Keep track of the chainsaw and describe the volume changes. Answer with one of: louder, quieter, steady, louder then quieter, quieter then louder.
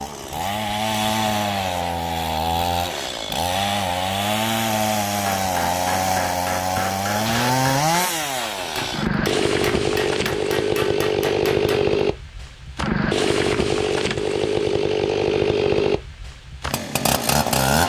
steady.